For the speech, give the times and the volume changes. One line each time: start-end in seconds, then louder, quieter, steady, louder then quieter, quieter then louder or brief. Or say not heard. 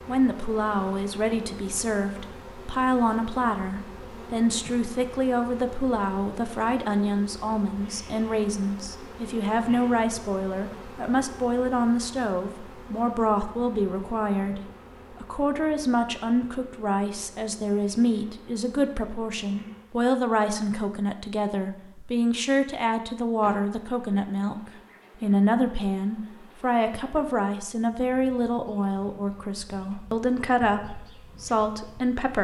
0.1-32.3 steady.